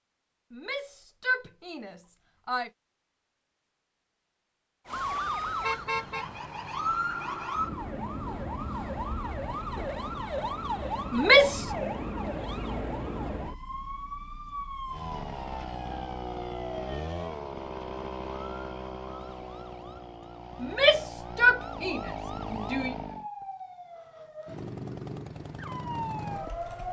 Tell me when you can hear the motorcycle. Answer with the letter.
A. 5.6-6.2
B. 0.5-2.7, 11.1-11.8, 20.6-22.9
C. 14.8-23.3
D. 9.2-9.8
C.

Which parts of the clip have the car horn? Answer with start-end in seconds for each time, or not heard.
5.6-6.2.